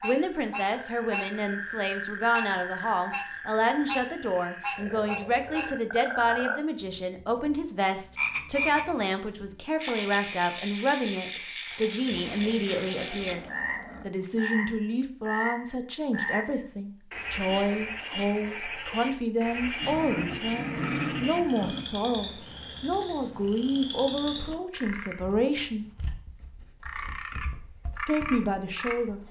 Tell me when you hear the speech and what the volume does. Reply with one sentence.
You can hear the speech from 0.0 to 25.9 s, at a steady volume; and briefly from 28.1 to 29.2 s.